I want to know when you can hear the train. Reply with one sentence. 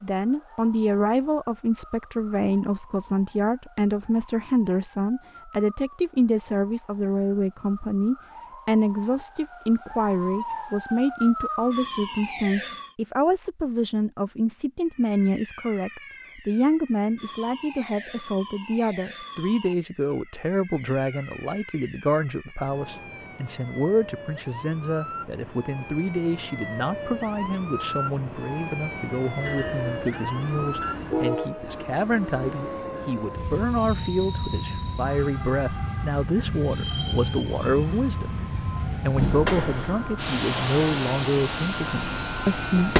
You can hear the train from 29.4 to 42.9 s.